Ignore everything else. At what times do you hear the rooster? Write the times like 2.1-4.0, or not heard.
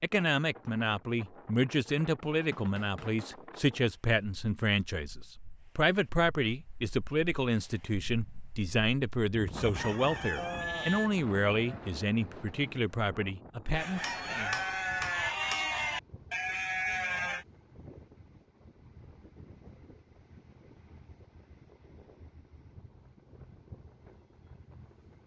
9.6-11.1, 13.8-15.3.